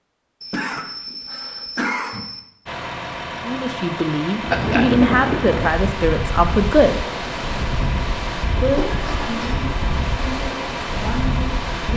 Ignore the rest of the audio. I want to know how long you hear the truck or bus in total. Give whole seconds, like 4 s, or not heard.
9 s.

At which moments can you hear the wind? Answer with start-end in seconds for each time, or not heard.
4.4-11.9.